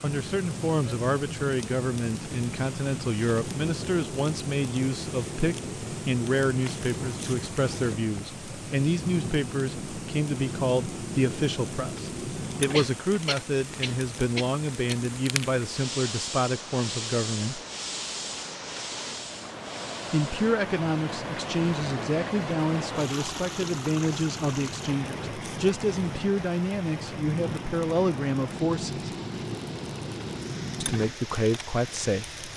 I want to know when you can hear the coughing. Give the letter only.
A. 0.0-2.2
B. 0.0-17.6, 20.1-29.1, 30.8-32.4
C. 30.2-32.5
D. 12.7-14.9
D.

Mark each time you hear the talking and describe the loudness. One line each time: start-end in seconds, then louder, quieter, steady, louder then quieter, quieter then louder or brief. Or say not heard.
0.0-17.6 steady
20.1-29.1 steady
30.8-32.4 brief.